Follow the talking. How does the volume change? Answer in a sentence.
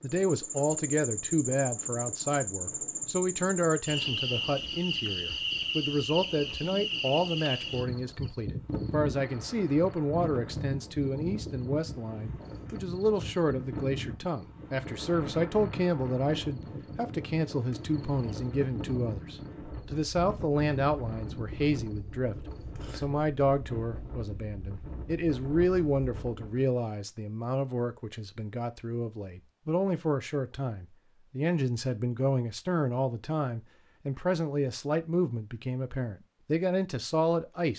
The volume of the talking stays about the same.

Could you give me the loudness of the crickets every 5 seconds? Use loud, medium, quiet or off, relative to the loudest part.
loud, loud, medium, medium, medium, off, off, off.